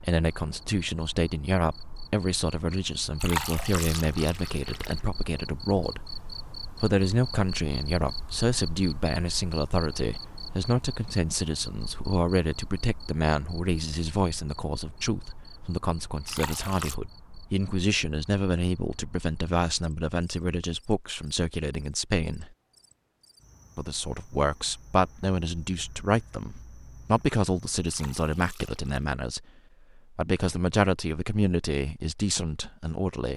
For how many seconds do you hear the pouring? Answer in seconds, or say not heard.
4 s.